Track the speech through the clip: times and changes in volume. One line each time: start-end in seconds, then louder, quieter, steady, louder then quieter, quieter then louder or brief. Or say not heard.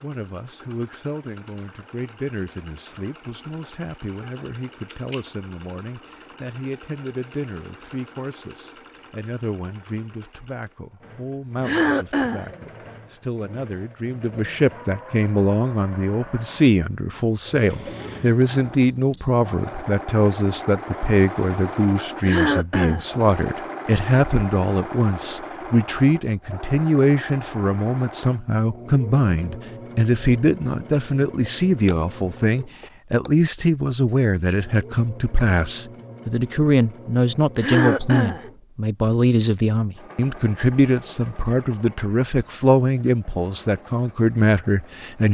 0.0-45.2 louder.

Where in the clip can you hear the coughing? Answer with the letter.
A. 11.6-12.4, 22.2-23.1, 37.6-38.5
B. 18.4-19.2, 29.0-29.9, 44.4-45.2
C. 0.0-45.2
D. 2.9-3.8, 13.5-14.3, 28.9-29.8
A.